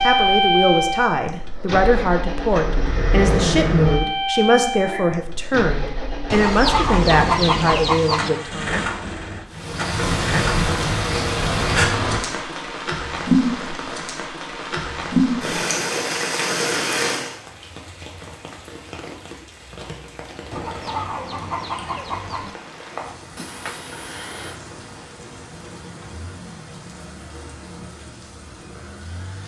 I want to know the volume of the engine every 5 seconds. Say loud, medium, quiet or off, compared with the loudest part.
loud, medium, medium, off, off, off.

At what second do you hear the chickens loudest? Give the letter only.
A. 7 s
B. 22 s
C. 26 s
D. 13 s
A.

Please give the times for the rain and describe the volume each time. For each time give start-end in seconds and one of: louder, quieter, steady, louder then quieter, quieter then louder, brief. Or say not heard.
9.5-29.4 quieter.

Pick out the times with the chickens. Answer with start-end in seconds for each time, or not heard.
6.3-8.3, 20.5-22.5.